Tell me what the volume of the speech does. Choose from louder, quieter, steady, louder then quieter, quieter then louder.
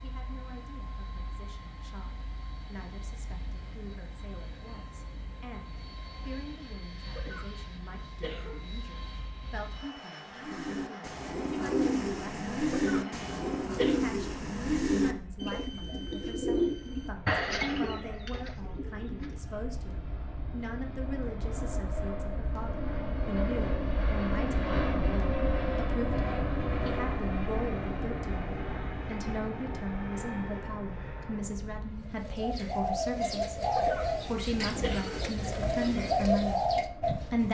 louder.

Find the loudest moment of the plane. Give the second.
25 s.